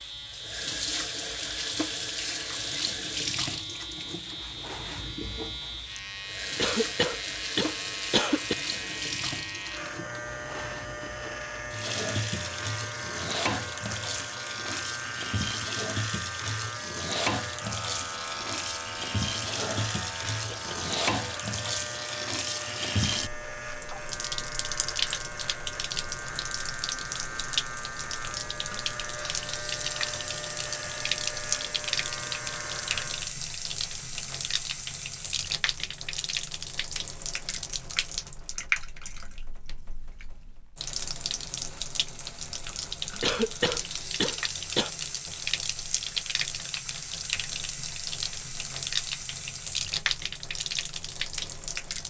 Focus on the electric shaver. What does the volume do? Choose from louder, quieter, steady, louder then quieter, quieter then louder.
steady.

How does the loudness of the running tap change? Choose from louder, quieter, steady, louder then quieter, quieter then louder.
steady.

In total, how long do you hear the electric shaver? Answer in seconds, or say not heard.
33 s.